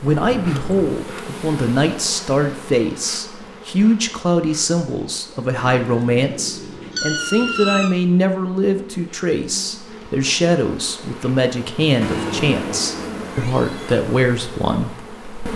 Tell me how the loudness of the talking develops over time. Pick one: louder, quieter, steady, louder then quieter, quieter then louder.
steady.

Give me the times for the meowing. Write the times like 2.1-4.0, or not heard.
0.2-1.1, 5.5-8.0, 12.0-14.0.